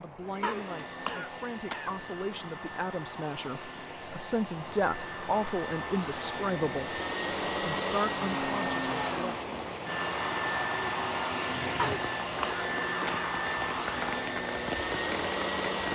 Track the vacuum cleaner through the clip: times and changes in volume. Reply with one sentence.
You can hear the vacuum cleaner from 0.0 to 15.8 s, getting louder.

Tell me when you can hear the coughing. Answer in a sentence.
The coughing can be heard from 0.4 to 1.9 s and from 11.8 to 13.3 s.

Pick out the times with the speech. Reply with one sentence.
You can hear the speech from 0.0 to 9.4 s.